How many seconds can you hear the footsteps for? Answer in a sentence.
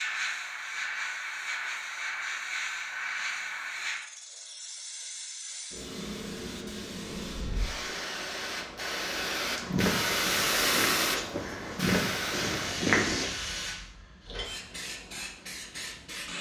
You can hear the footsteps for 4 seconds altogether.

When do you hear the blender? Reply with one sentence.
You can't hear the blender here.